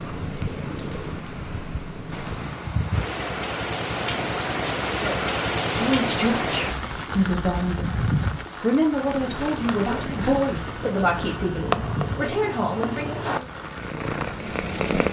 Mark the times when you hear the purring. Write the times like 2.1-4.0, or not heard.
0.0-2.5, 9.2-15.0.